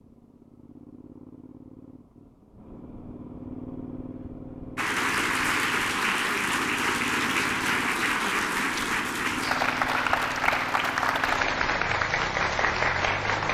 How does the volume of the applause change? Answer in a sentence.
The loudness of the applause stays about the same.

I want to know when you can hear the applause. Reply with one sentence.
The applause can be heard from 4.8 to 13.4 s.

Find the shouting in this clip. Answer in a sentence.
You can't hear the shouting here.